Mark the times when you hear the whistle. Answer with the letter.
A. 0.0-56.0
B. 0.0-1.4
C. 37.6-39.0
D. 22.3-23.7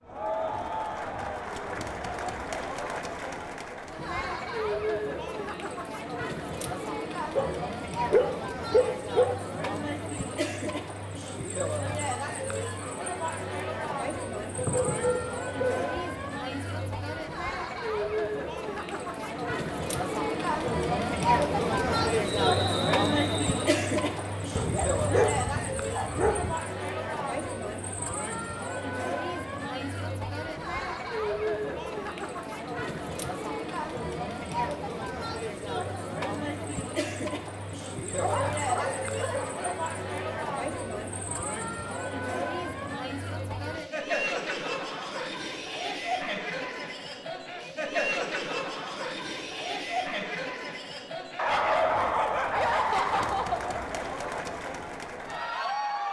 D.